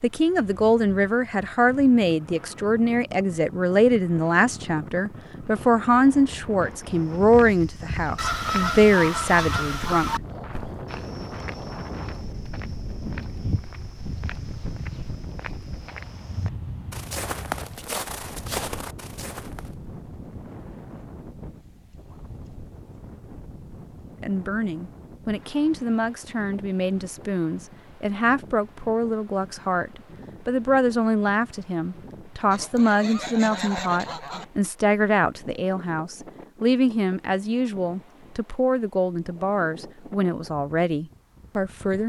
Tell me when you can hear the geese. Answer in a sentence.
The geese can be heard from 8.2 to 10.2 s and from 32.5 to 34.5 s.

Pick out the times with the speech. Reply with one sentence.
The speech can be heard from 0.0 to 10.2 s and from 24.2 to 42.0 s.